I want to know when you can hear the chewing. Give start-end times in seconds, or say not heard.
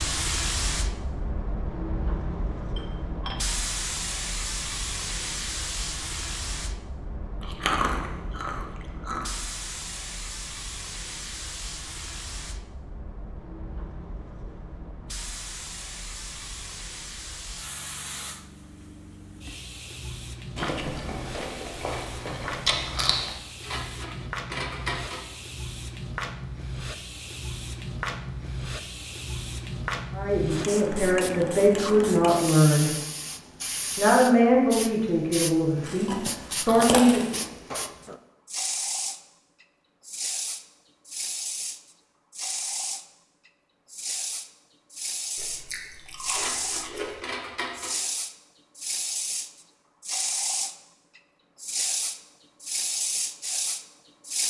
7.4-9.2, 20.6-23.4, 35.9-37.5, 45.4-47.2.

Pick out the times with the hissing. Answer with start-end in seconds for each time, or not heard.
0.0-54.4.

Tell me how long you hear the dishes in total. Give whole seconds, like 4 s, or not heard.
4 s.